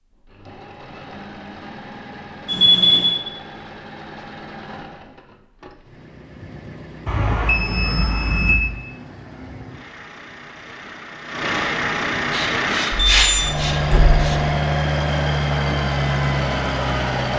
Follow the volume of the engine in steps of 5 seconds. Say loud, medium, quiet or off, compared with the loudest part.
quiet, quiet, loud, loud.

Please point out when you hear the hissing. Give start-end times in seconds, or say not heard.
12.3-14.4.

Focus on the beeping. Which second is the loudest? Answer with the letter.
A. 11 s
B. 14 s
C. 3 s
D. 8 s
C.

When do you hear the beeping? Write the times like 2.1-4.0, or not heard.
2.5-3.2, 7.0-8.6, 12.9-14.2.